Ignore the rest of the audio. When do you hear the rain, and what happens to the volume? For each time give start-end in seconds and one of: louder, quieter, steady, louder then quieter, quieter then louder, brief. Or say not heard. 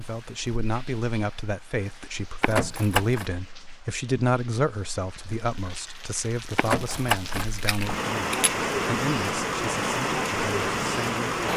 0.0-11.5 louder.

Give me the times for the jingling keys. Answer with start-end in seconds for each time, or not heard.
2.4-3.2, 6.5-8.5.